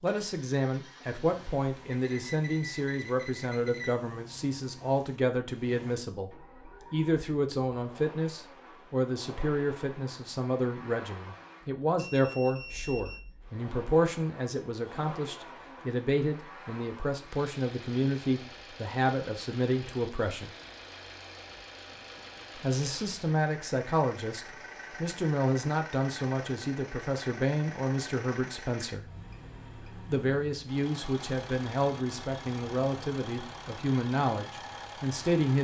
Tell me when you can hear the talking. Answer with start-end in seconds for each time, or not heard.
0.0-20.5, 22.6-29.1, 30.0-35.5.